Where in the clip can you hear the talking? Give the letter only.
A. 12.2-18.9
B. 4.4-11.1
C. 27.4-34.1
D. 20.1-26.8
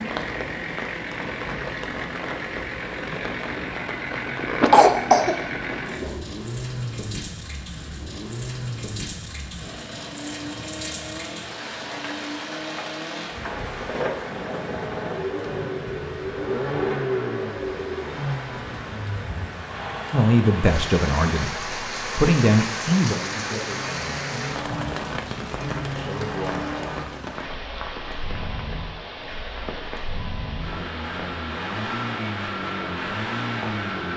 D.